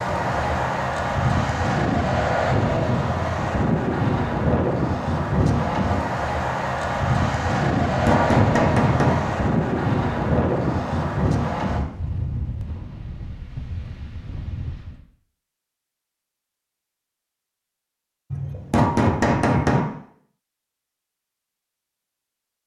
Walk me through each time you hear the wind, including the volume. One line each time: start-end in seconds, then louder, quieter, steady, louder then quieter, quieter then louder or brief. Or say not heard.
0.0-15.0 quieter.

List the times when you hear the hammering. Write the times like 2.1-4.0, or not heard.
7.8-9.2, 18.3-19.9.